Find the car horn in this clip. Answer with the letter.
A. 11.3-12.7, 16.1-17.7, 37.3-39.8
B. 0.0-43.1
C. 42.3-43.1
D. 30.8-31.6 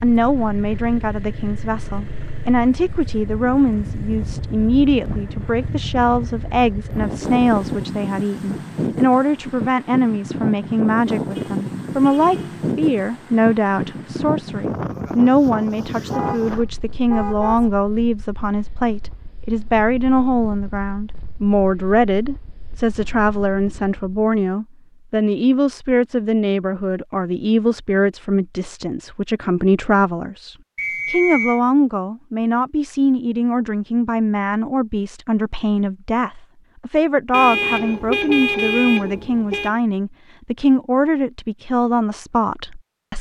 A.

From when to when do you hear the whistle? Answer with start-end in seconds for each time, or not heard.
30.8-31.6.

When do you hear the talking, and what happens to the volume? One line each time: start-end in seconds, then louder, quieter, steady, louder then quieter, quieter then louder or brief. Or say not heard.
0.0-43.1 steady.